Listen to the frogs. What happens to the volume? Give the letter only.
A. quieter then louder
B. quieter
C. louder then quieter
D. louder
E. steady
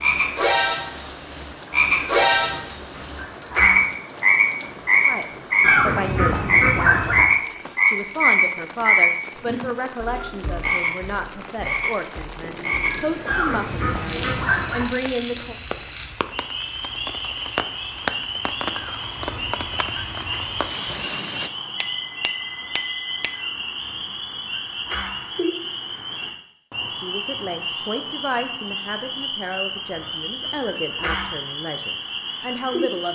B.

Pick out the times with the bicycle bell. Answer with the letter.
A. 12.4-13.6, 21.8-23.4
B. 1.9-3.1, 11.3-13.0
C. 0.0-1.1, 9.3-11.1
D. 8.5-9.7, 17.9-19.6
A.